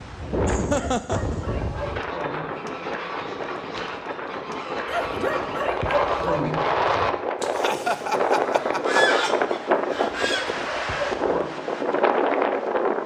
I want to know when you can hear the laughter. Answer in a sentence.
The laughter can be heard from 0.5 to 1.4 s and from 7.5 to 9.3 s.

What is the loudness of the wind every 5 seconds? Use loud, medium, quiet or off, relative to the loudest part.
medium, loud, loud.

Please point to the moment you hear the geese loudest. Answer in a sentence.
The volume of the geese peaks at 9 seconds.